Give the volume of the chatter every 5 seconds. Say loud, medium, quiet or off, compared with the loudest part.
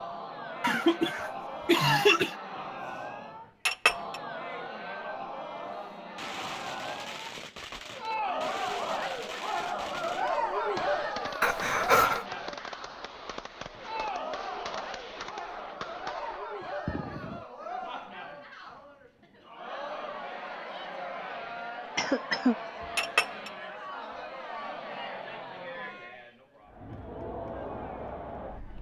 medium, loud, loud, medium, medium, medium.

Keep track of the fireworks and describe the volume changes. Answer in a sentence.
The loudness of the fireworks stays about the same.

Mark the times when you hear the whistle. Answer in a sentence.
The whistle can't be heard in this clip.